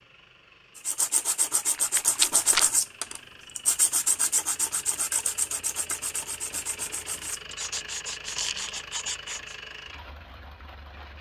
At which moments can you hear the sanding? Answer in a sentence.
You can hear the sanding from 0.8 to 9.6 s.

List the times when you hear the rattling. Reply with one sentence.
The rattling can be heard from 1.8 to 2.6 s and from 8.2 to 8.8 s.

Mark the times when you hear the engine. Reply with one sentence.
You can hear the engine from 0.0 to 11.1 s.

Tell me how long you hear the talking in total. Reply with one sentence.
The talking can't be heard in this clip.